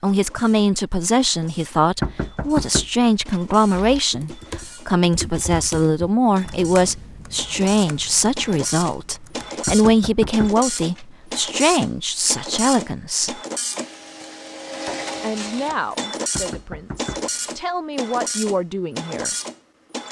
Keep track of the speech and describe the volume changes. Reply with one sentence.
The volume of the speech goes down.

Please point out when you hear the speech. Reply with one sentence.
You can hear the speech from 0.0 to 13.4 s and from 15.2 to 19.3 s.